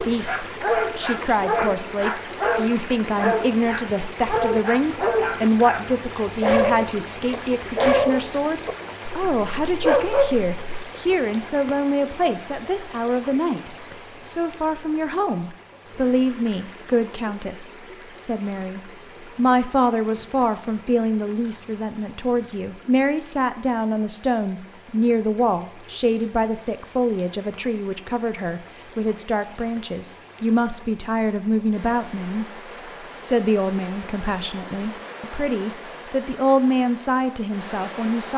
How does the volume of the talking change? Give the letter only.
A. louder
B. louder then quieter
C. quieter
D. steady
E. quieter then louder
D.